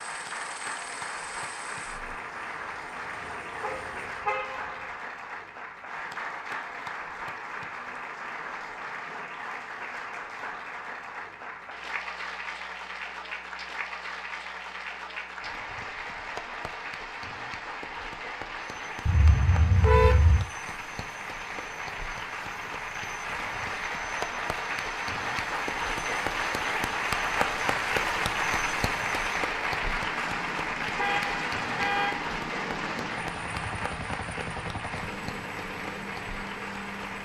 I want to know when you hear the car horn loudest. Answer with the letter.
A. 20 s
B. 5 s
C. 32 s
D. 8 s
A.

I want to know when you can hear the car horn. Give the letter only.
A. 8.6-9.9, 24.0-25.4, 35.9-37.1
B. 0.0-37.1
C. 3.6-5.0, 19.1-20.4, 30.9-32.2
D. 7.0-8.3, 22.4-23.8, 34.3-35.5
C.